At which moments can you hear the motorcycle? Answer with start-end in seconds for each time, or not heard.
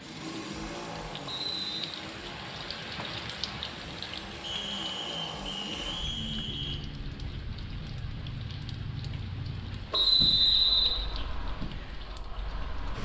0.0-13.0.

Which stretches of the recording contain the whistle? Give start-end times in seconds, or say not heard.
1.2-1.9, 4.4-6.8, 9.9-10.9.